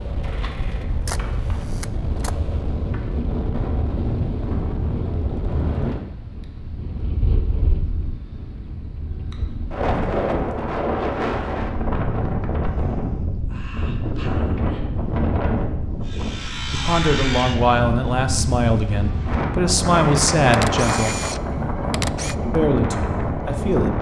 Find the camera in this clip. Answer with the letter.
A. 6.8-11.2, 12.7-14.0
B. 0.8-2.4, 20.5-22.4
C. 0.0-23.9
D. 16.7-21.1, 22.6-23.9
B.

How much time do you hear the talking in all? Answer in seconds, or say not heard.
6 s.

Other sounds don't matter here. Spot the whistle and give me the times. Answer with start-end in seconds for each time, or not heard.
not heard.